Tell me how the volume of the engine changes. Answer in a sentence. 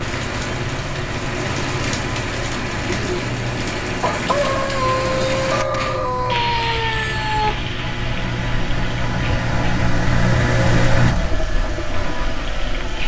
The loudness of the engine goes up.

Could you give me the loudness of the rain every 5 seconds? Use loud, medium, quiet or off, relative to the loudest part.
loud, loud, medium.